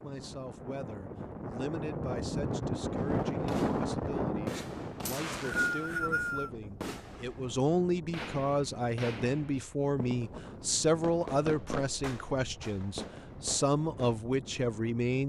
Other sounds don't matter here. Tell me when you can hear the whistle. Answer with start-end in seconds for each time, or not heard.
5.0-6.5.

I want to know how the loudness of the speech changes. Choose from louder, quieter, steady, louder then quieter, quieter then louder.
louder.